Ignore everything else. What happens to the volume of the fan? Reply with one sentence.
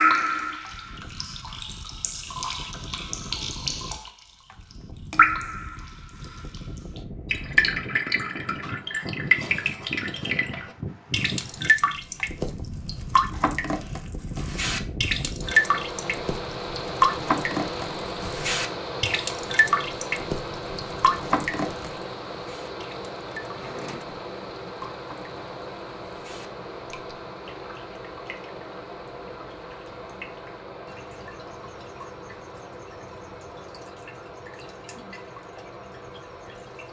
The volume of the fan goes up, then down.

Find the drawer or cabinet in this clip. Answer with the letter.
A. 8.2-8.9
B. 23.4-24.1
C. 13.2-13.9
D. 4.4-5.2
B.